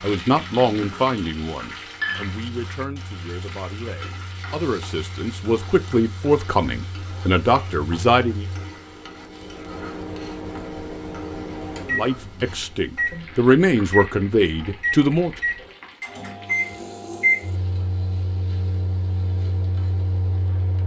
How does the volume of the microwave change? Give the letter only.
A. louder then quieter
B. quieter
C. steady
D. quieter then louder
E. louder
E.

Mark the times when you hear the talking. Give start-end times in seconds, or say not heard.
0.0-8.4, 11.9-15.3.